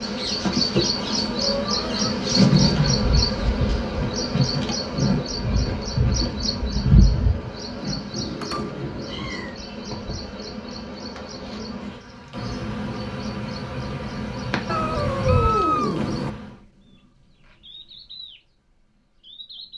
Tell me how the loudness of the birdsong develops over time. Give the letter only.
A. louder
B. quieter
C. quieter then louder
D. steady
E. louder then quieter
B.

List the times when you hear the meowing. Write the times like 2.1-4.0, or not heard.
0.9-2.1, 8.1-9.6, 14.7-16.3.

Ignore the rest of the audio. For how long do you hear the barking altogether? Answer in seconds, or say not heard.
not heard.